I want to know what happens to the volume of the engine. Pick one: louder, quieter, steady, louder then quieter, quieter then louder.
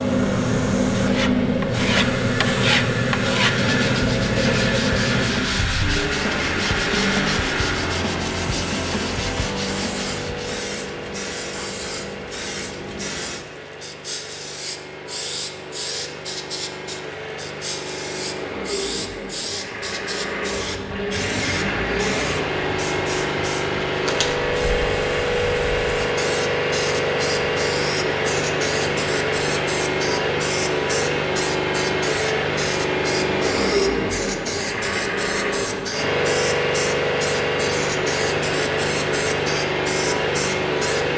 quieter then louder.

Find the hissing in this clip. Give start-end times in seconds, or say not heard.
0.0-41.1.